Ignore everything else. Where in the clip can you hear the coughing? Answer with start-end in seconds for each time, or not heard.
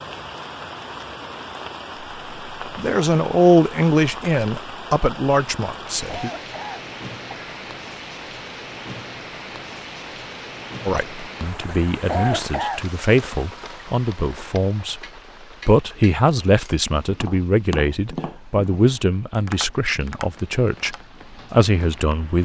6.0-7.3, 12.1-12.8.